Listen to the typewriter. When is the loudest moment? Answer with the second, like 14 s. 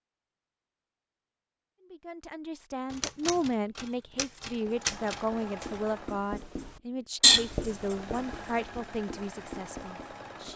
5 s.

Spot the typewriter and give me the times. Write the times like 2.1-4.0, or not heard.
2.9-5.8.